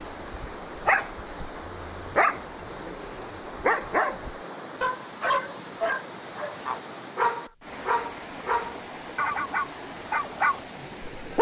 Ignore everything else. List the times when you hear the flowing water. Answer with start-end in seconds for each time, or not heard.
0.0-11.3.